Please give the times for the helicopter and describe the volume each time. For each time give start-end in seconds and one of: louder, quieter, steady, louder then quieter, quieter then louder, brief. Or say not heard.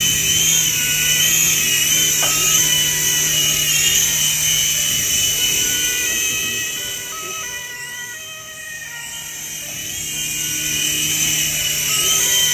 0.0-12.4 quieter then louder.